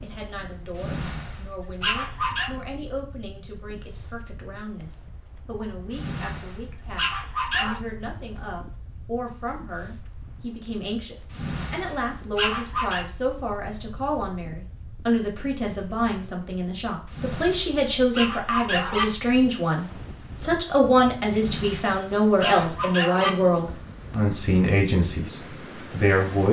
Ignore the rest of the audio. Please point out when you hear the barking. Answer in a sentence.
You can hear the barking from 0.8 to 2.5 s, from 5.9 to 7.8 s, from 11.3 to 13.1 s, from 17.1 to 19.1 s and from 21.4 to 23.3 s.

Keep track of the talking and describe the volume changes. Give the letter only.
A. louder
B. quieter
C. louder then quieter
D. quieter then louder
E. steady
A.